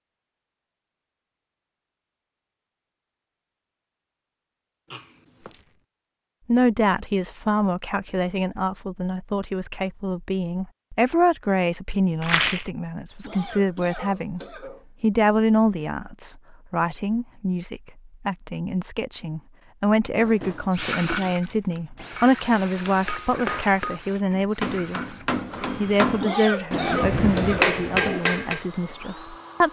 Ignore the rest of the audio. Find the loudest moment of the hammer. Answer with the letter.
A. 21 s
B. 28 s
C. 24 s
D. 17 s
B.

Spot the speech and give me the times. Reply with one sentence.
The speech can be heard from 6.5 to 14.4 s and from 15.0 to 29.6 s.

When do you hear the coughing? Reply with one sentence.
You can hear the coughing from 4.9 to 5.5 s, from 13.2 to 14.8 s and from 26.2 to 28.2 s.